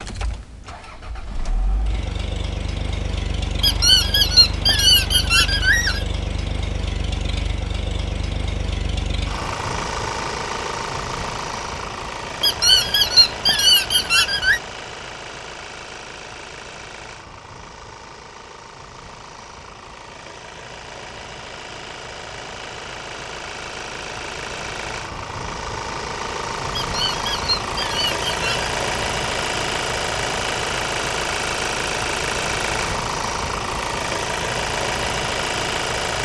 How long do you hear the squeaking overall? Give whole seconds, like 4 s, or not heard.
7 s.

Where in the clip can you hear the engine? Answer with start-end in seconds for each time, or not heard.
0.0-36.2.